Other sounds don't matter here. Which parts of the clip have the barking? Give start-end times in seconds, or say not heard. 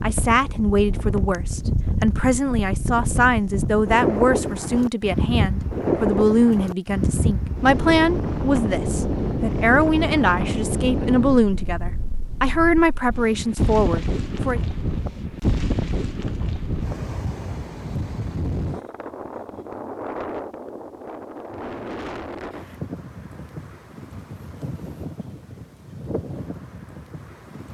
not heard.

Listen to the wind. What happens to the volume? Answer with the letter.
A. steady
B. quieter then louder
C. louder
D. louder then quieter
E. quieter
E.